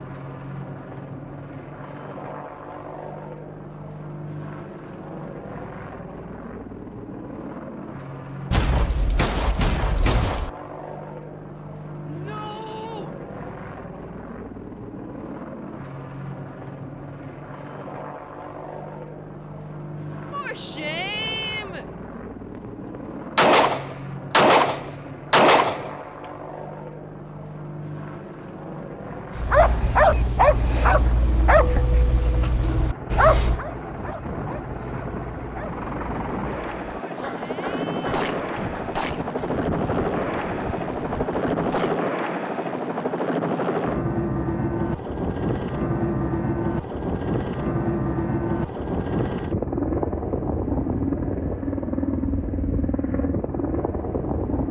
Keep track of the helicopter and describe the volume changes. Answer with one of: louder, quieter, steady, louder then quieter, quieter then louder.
louder.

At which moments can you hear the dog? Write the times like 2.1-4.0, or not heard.
29.4-38.8.